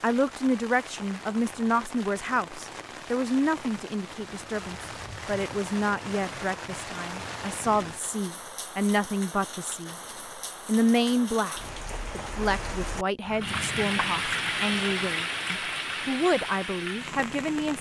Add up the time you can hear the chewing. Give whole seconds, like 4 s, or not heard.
not heard.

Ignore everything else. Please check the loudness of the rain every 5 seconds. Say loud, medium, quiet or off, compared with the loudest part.
medium, medium, loud, loud.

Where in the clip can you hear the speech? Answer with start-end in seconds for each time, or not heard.
0.0-9.9, 10.7-17.7.